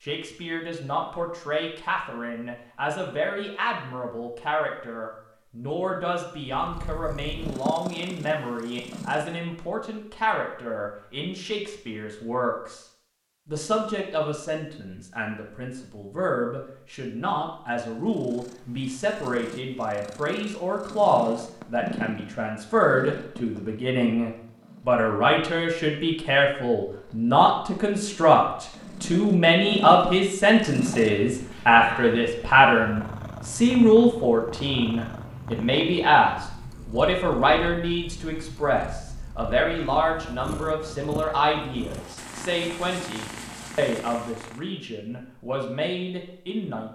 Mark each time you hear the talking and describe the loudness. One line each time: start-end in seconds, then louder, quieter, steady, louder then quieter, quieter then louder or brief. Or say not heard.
0.0-12.8 steady
13.4-46.8 louder then quieter.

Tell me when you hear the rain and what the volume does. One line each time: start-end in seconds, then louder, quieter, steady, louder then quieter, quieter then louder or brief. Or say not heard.
not heard.